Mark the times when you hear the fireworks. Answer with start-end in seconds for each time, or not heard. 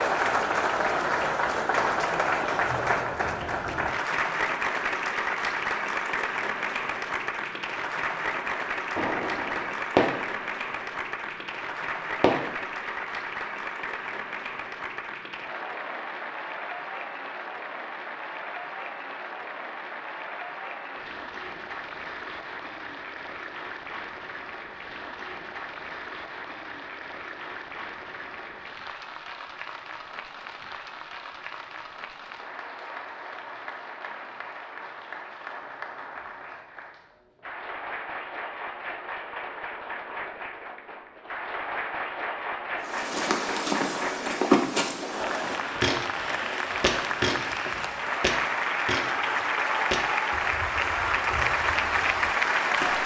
8.3-10.4, 12.2-12.8.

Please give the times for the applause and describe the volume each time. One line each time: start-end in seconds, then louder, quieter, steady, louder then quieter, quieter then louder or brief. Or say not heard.
0.0-53.0 quieter then louder.